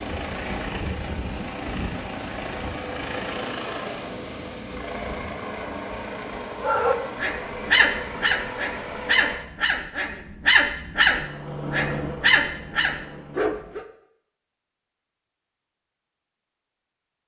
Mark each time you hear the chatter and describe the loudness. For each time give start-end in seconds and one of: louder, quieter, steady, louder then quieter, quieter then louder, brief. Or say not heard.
not heard.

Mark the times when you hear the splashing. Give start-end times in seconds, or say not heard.
not heard.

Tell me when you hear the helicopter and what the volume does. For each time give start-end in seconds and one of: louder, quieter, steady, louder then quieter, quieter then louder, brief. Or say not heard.
0.0-9.4 steady
11.1-13.5 brief.